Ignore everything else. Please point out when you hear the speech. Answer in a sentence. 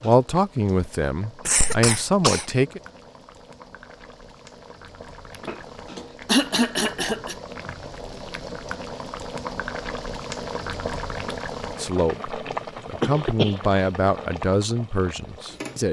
The speech can be heard from 0.0 to 2.8 s and from 11.8 to 15.8 s.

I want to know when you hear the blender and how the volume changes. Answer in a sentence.
You can't hear the blender here.